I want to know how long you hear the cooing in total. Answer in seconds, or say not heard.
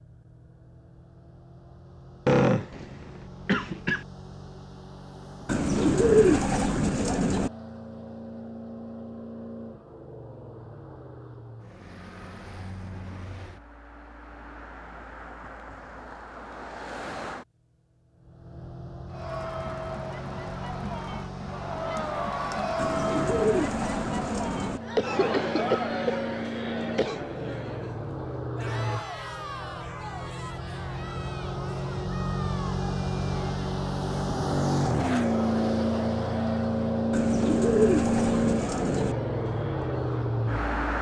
6 s.